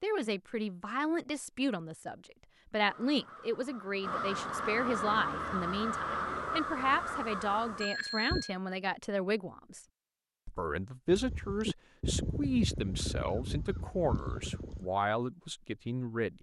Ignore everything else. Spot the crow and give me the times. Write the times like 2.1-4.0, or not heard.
2.8-8.4, 11.1-14.9.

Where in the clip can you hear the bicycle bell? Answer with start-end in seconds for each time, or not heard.
7.8-8.6.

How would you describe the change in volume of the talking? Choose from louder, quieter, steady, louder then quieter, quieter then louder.
steady.